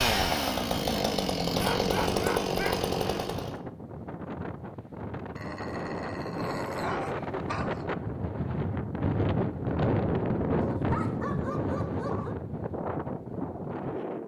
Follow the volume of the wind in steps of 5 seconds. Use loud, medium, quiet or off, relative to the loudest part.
medium, loud, loud.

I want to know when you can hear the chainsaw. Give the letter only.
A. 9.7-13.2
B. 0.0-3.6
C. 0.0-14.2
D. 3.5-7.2
B.